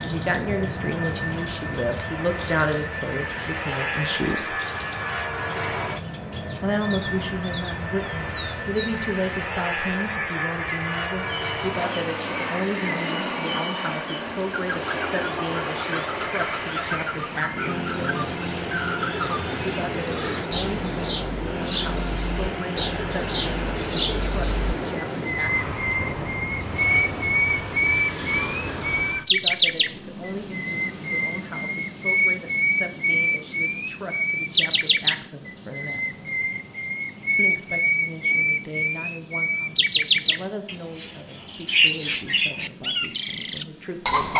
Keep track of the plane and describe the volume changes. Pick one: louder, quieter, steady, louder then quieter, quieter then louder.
quieter.